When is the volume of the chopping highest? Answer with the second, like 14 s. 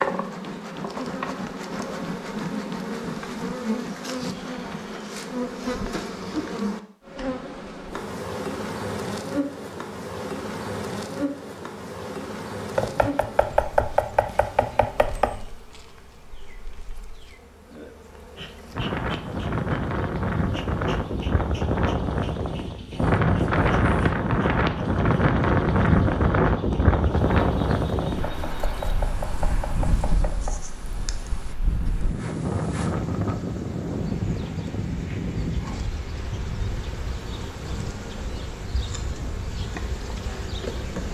14 s.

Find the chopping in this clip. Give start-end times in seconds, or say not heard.
12.8-15.4, 28.2-30.6.